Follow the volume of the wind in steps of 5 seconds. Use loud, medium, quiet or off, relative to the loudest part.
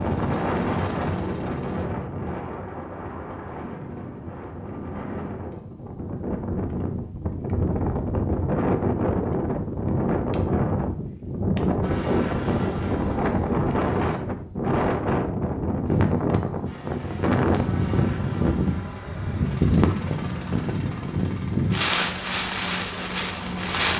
medium, loud, loud, loud, loud.